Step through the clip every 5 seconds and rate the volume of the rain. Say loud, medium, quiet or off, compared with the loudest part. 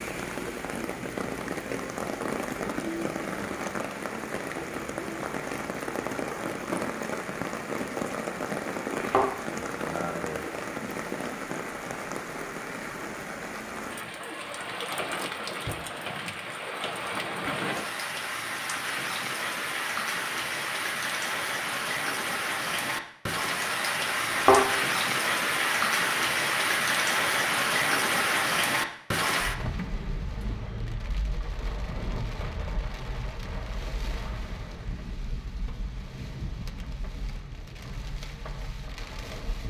medium, medium, medium, medium, loud, loud, quiet, quiet.